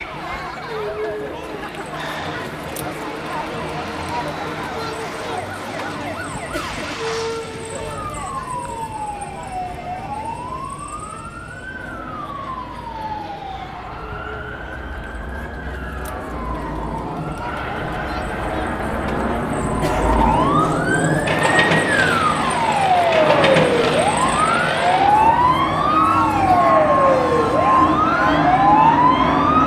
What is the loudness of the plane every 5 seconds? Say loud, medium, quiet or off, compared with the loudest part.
quiet, quiet, quiet, medium, loud, loud.